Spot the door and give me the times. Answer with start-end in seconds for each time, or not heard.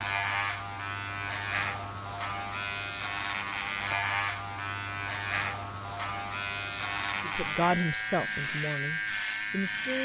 not heard.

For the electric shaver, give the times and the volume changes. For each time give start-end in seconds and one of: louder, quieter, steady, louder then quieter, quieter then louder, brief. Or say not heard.
0.0-10.0 steady.